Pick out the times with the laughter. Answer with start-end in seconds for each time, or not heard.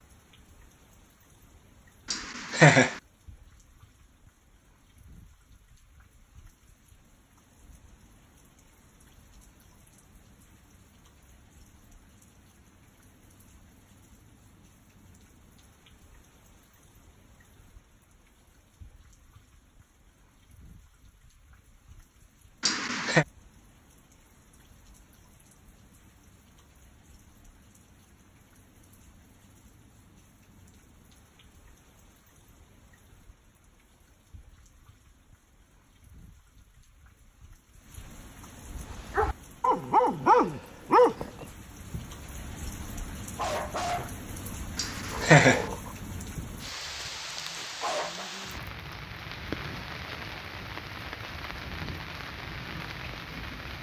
2.1-3.0, 22.6-23.2, 44.8-45.6.